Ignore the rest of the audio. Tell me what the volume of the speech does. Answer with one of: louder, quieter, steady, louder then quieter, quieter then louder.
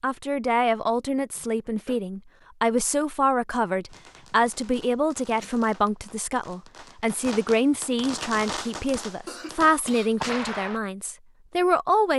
steady.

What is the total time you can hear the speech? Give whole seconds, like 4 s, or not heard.
12 s.